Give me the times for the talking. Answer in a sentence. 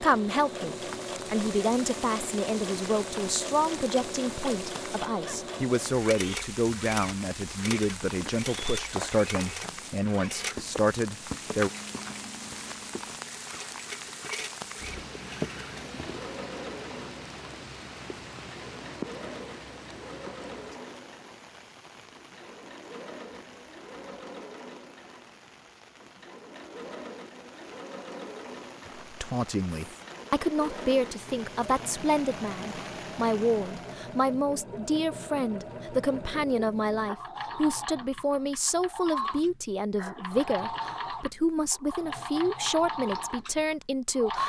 You can hear the talking from 0.0 to 11.7 s and from 28.9 to 44.4 s.